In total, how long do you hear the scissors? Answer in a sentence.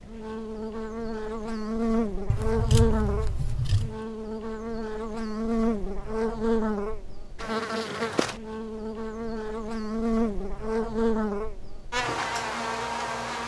You can hear the scissors for 2 seconds altogether.